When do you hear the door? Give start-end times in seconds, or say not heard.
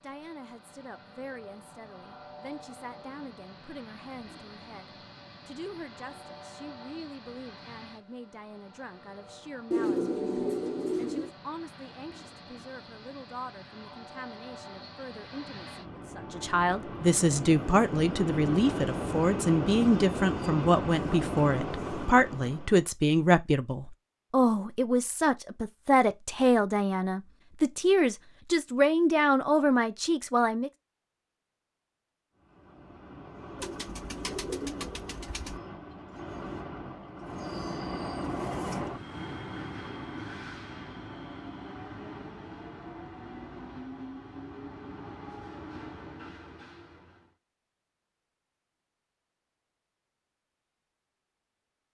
not heard.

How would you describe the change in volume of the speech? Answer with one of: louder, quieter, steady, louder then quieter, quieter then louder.
louder.